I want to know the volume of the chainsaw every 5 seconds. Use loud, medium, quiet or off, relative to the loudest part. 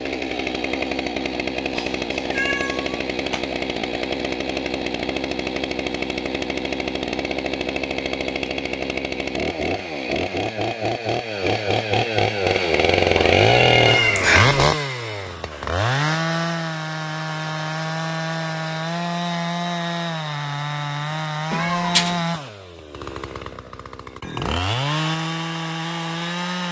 medium, medium, loud, medium, medium, medium.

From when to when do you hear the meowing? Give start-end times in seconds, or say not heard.
1.8-3.5, 13.2-14.6, 21.5-22.1.